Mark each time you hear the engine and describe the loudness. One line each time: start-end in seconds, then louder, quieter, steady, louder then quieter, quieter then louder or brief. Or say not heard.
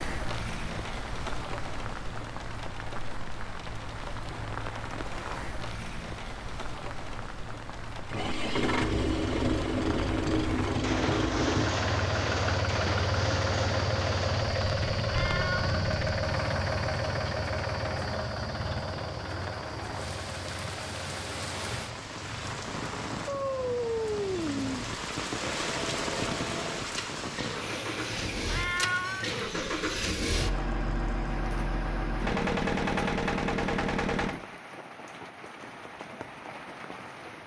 8.1-34.4 quieter then louder.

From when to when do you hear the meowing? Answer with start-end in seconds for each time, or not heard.
15.1-15.8, 28.4-29.2.